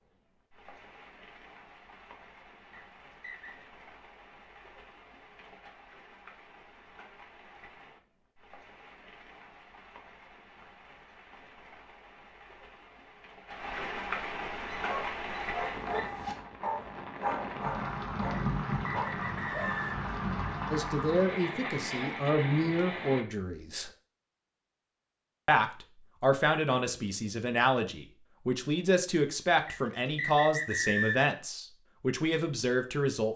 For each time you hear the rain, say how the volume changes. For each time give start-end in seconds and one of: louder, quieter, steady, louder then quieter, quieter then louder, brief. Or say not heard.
0.0-23.2 louder.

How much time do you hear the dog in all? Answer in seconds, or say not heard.
5 s.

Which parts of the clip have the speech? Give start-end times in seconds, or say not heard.
20.7-23.9, 25.4-33.3.